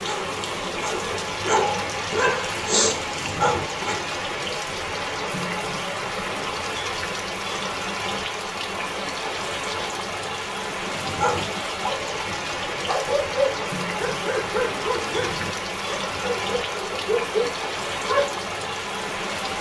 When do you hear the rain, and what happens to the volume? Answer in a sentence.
You can hear the rain from 0.0 to 19.5 s, at a steady volume.